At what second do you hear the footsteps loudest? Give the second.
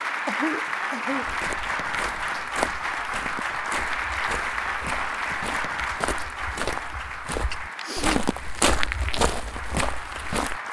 9 s.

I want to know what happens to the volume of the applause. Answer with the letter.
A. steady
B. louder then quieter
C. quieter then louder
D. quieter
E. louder
D.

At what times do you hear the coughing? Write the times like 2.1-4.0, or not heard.
0.2-1.4, 7.5-8.2.